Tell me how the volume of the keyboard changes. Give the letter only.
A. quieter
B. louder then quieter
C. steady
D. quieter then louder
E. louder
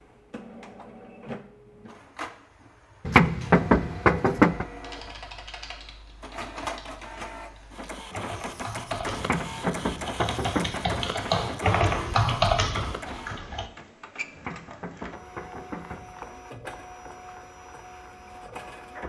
E.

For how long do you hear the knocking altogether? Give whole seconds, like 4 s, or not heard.
5 s.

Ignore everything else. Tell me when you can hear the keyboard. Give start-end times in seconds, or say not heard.
4.7-13.7.